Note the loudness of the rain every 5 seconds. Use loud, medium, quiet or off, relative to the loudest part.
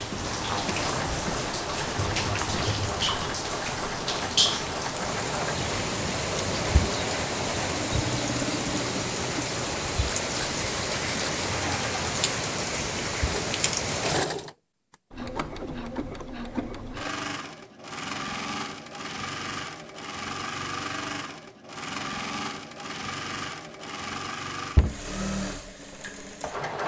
loud, loud, loud, off, off, off.